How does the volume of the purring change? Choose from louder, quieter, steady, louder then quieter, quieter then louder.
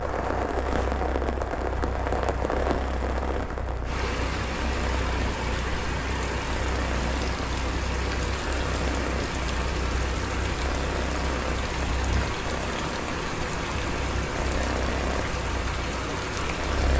steady.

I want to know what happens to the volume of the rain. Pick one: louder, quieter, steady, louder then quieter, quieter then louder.
steady.